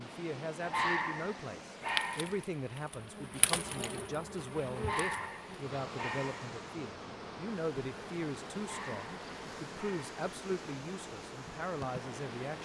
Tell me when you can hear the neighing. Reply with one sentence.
The neighing can't be heard in this clip.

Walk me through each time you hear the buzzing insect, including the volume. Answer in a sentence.
The buzzing insect can be heard from 1.8 to 12.6 s, getting quieter.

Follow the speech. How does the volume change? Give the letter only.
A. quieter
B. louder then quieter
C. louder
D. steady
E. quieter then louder
D.